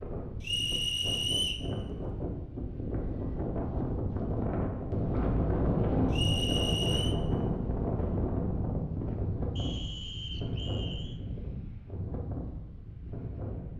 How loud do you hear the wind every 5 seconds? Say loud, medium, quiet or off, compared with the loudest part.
medium, loud, medium.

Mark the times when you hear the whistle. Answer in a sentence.
You can hear the whistle from 0.4 to 1.6 s, from 6.1 to 7.2 s and from 9.6 to 11.2 s.